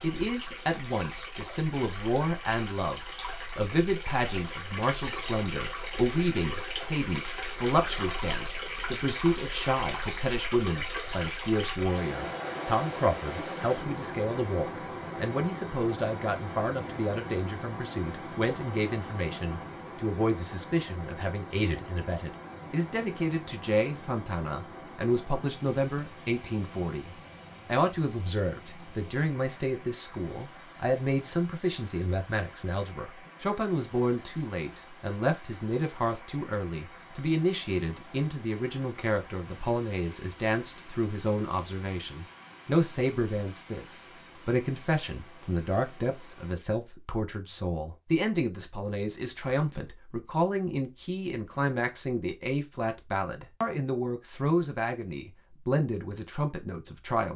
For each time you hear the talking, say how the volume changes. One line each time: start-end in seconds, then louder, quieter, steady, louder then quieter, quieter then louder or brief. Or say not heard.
0.0-57.3 steady.